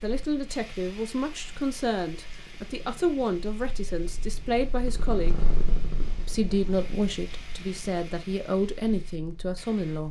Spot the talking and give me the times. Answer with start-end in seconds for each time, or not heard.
0.0-5.3, 6.2-10.0.